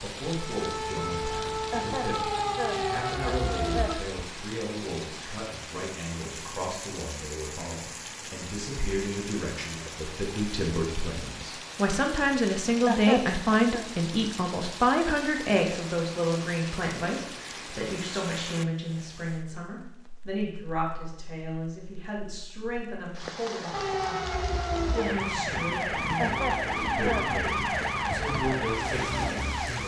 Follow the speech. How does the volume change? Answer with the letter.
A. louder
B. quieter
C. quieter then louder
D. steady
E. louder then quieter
E.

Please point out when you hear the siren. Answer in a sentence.
You can hear the siren from 0.2 to 4.0 s and from 23.7 to 29.8 s.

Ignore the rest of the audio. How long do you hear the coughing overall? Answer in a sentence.
The coughing can be heard for 4 seconds in total.